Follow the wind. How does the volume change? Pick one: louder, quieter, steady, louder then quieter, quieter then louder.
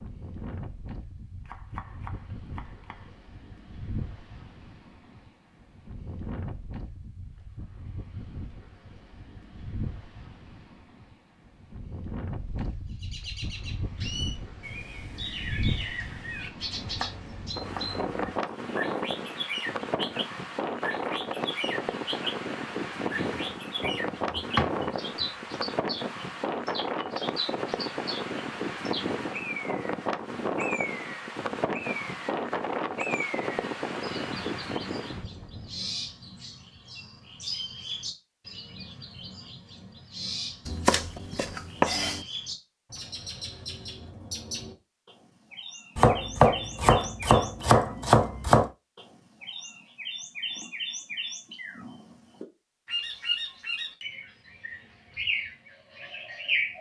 louder.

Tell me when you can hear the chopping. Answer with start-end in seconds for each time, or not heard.
1.4-3.2, 16.8-18.4, 23.1-25.2, 40.6-42.2, 46.0-48.7.